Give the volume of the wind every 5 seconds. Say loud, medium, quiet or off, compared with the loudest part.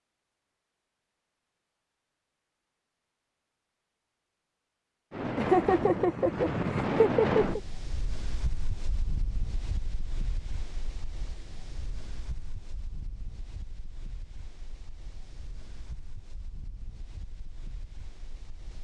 off, loud, quiet, quiet.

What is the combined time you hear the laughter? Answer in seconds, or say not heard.
2 s.